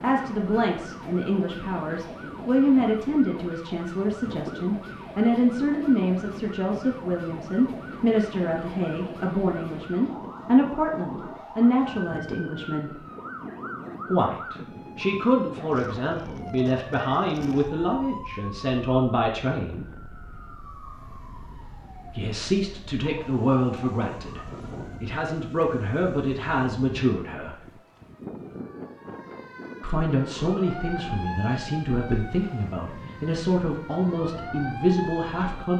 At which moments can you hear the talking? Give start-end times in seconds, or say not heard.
0.0-13.0, 14.1-19.9, 22.1-27.8, 29.8-35.7.